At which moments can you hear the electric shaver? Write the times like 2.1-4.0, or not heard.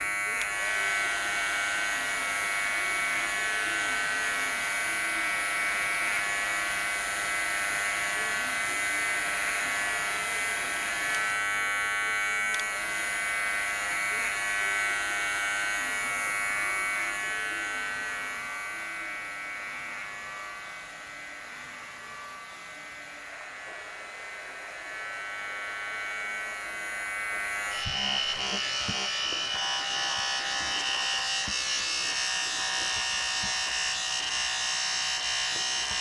0.0-35.9.